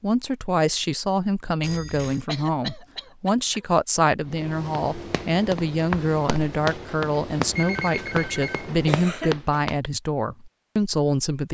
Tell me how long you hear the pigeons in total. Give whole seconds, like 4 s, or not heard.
not heard.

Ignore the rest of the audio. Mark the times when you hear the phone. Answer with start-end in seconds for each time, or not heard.
1.6-2.2, 7.5-8.8.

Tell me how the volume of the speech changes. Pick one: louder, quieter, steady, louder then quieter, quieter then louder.
steady.